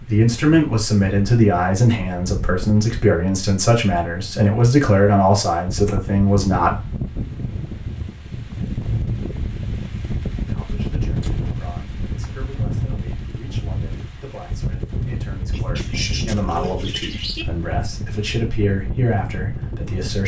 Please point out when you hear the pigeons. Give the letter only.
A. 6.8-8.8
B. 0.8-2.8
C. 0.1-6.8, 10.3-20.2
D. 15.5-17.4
D.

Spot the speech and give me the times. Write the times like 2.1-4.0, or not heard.
0.1-6.8, 10.3-20.2.